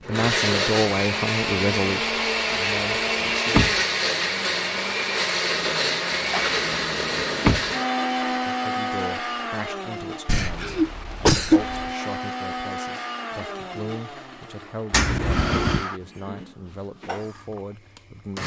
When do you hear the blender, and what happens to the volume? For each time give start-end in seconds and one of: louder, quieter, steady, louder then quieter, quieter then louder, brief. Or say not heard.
0.0-18.4 quieter.